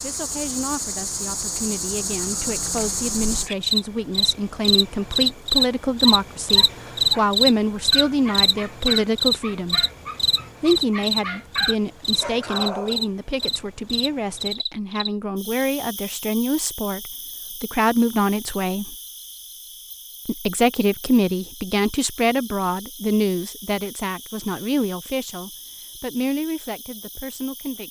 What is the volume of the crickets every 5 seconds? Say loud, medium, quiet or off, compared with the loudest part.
medium, loud, medium, quiet, quiet, quiet.